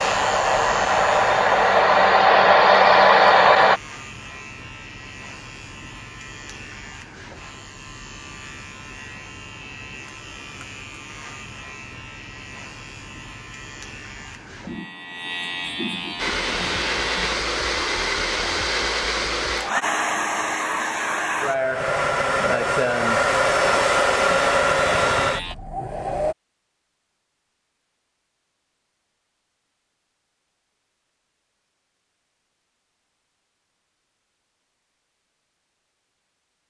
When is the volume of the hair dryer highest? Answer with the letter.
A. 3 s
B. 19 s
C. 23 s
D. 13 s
A.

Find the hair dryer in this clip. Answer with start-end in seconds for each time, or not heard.
0.0-3.8, 16.1-26.4.